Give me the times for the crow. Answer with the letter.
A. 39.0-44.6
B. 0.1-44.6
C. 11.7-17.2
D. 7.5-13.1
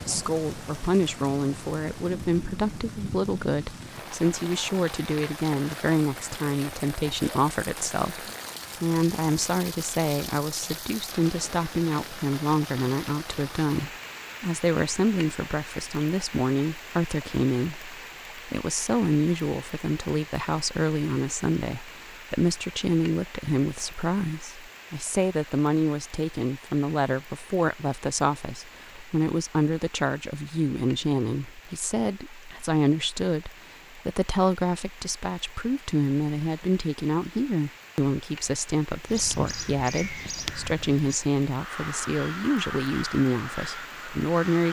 A.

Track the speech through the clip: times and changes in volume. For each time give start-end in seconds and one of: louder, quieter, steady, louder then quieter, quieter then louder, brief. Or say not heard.
0.1-44.6 steady.